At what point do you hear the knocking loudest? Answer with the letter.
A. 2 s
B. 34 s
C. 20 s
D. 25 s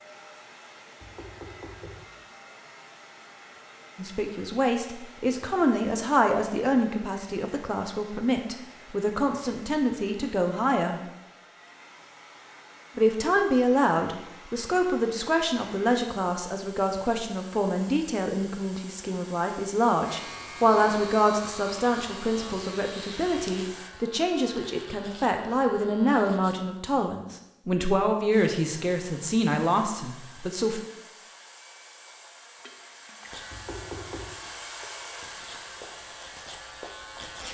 B.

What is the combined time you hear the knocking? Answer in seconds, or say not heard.
2 s.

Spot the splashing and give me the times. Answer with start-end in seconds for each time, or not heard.
32.5-33.5.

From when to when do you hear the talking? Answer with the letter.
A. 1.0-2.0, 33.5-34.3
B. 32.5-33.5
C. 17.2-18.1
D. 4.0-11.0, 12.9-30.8
D.